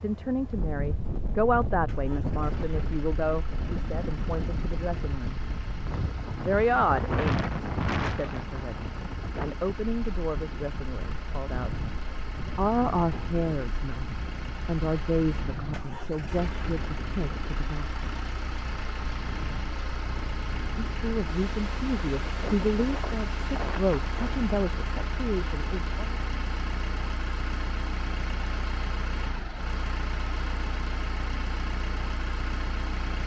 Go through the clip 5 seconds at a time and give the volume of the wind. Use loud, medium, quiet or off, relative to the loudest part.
loud, loud, medium, medium, medium, off, off.